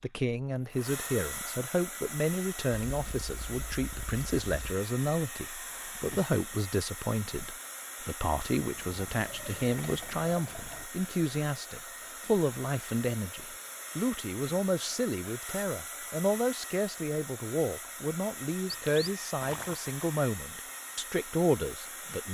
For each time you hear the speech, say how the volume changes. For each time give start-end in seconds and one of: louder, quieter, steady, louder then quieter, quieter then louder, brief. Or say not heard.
0.0-22.3 steady.